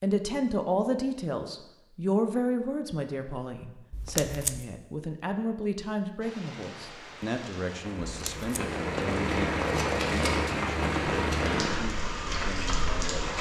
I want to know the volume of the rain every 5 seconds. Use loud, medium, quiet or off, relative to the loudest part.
off, loud, loud.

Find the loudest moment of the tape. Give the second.
4 s.